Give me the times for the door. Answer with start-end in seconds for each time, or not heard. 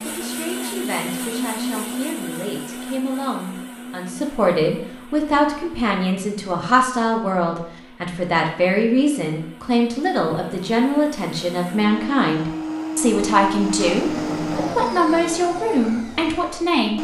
13.8-14.8.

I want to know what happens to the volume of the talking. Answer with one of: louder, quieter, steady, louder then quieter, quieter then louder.
louder.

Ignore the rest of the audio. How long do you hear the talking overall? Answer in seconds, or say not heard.
17 s.